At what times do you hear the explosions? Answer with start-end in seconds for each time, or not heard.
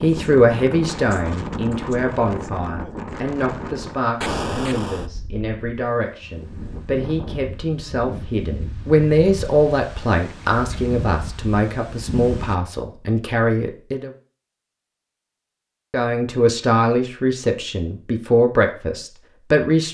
4.2-5.1.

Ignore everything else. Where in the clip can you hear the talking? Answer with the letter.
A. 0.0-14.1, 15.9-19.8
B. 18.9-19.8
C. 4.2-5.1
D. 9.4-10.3
A.